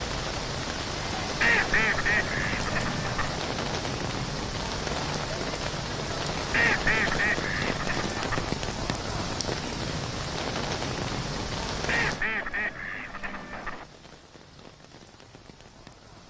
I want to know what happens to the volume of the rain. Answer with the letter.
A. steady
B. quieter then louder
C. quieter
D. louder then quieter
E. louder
C.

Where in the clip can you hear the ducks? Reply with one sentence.
You can hear the ducks from 1.4 to 3.4 s, from 6.5 to 8.5 s and from 11.8 to 13.8 s.